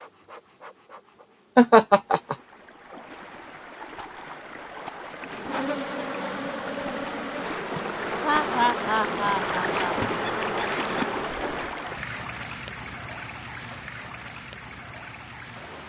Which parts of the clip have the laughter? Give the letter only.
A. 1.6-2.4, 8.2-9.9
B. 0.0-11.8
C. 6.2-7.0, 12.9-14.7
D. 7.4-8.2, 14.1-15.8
A.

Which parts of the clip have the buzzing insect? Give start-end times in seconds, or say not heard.
0.0-11.8.